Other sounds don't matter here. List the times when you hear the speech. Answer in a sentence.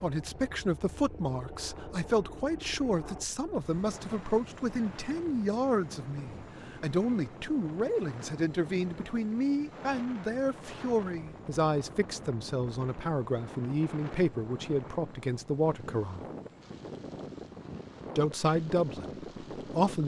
The speech can be heard from 0.0 to 16.2 s and from 18.1 to 20.0 s.